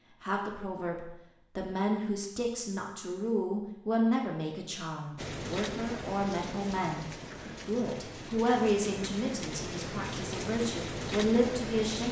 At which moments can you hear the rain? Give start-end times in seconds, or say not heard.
5.2-12.0.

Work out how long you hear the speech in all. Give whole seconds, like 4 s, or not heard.
12 s.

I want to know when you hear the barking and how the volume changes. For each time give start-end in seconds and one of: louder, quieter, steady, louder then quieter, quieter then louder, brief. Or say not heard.
not heard.